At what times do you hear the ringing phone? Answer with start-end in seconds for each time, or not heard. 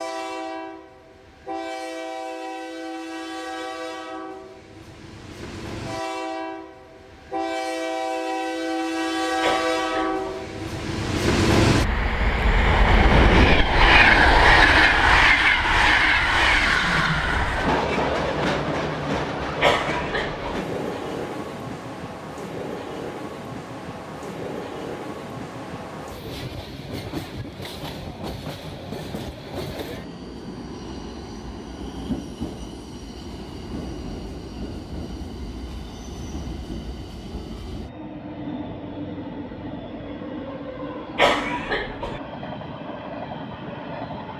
not heard.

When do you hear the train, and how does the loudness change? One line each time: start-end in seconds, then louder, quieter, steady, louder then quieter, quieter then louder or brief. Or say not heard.
0.0-44.3 louder then quieter.